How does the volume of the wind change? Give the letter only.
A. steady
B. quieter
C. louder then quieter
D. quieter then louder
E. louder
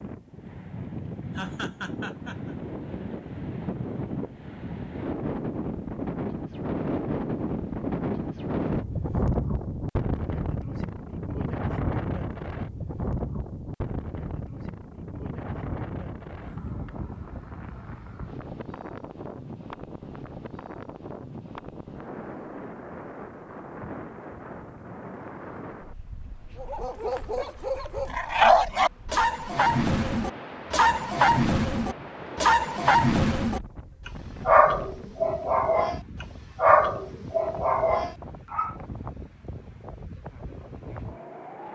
B.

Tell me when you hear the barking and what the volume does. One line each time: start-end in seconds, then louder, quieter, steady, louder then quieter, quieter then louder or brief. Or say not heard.
26.6-38.8 steady.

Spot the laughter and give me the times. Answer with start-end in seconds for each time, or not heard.
1.4-2.5.